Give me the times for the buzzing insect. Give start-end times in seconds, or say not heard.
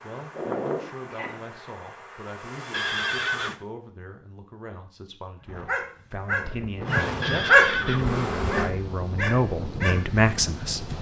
0.0-3.5, 6.8-8.7.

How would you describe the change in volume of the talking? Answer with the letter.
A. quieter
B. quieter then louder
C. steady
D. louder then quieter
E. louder
E.